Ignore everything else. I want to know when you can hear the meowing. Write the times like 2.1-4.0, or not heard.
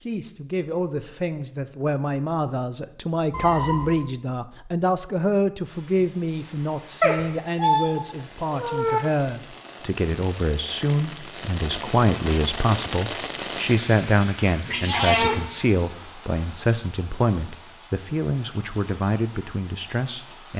3.3-4.0, 7.0-9.0, 14.7-15.4.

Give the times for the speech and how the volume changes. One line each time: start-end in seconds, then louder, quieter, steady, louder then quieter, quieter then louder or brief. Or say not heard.
0.0-20.5 steady.